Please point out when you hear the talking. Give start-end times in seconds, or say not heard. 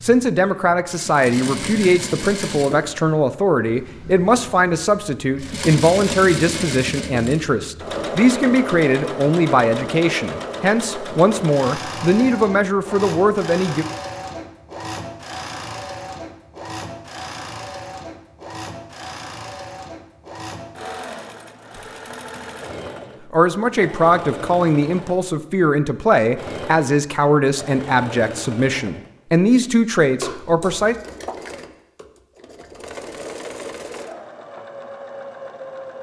0.0-13.8, 23.3-30.9.